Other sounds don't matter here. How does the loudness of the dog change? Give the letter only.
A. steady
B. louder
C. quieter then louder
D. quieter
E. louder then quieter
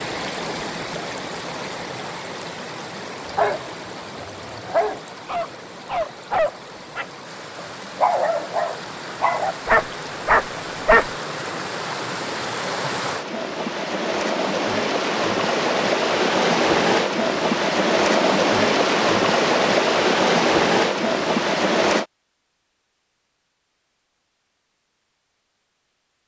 B.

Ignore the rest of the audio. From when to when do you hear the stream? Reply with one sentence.
The stream can be heard from 0.0 to 22.1 s.